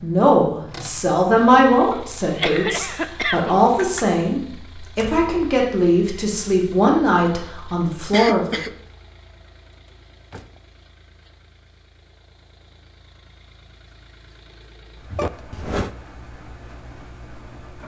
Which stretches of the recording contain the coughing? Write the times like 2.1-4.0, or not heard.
2.2-4.1, 8.1-8.8, 15.1-15.9.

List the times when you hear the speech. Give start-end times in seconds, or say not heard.
0.0-8.6.